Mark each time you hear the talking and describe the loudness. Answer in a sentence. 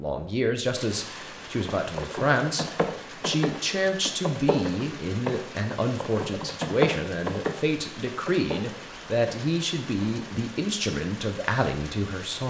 The talking can be heard from 0.0 to 12.4 s, at a steady volume.